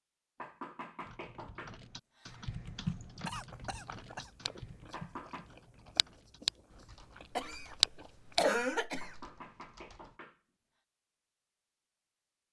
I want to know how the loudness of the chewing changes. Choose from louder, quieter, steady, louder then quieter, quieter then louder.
quieter then louder.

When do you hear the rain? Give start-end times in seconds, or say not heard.
not heard.